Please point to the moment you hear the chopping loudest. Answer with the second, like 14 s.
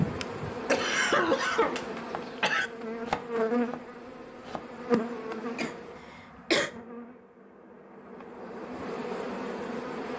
3 s.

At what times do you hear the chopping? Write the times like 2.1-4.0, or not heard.
2.1-4.8.